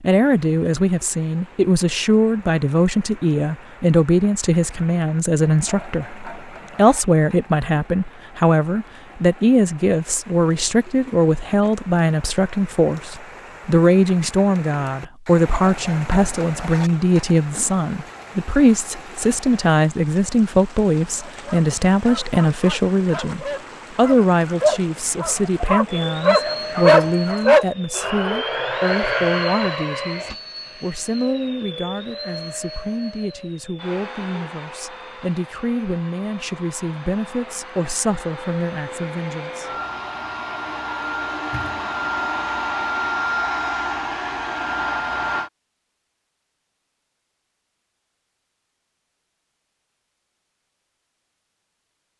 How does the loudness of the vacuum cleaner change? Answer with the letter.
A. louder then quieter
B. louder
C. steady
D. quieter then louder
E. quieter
D.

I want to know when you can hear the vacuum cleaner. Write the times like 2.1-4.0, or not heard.
25.9-45.5.